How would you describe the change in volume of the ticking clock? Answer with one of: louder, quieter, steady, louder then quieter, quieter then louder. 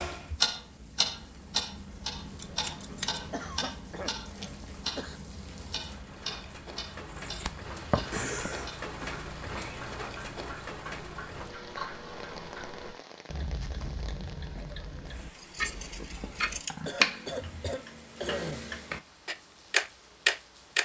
quieter then louder.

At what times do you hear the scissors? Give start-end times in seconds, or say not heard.
2.4-3.5, 7.1-8.4, 15.3-17.8.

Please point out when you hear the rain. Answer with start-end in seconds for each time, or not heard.
0.1-20.8.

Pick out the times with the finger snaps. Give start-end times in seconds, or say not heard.
not heard.